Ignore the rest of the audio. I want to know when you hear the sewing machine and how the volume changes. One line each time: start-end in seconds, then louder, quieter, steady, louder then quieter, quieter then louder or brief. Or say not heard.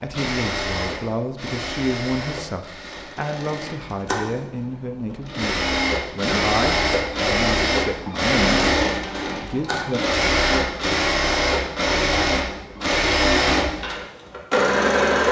0.0-15.2 louder.